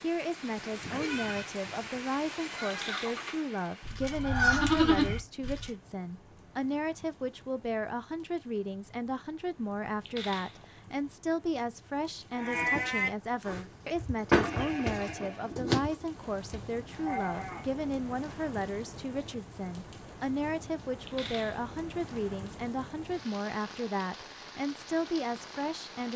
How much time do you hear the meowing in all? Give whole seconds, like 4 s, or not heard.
2 s.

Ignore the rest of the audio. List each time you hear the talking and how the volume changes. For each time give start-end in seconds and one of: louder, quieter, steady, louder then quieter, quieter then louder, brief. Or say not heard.
0.0-26.1 steady.